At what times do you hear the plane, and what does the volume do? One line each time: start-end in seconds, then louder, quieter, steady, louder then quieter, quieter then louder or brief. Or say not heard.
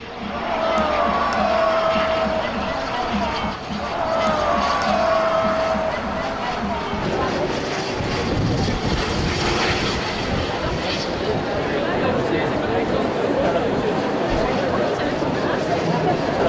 0.0-16.4 louder then quieter.